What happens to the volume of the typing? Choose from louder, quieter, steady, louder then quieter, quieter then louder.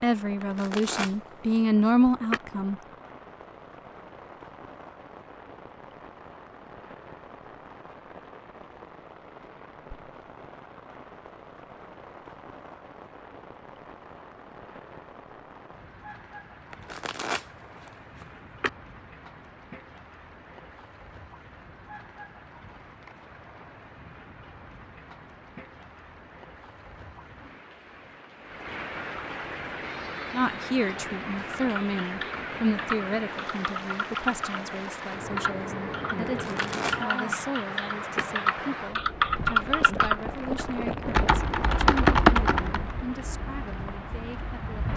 louder.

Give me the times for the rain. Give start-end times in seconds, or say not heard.
0.0-44.9.